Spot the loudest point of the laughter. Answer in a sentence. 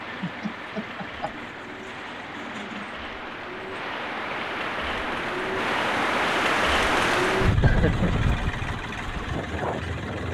The loudest moment of the laughter is at 8 seconds.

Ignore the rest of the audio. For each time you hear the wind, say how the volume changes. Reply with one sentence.
You can hear the wind from 0.0 to 10.3 s, getting louder then quieter.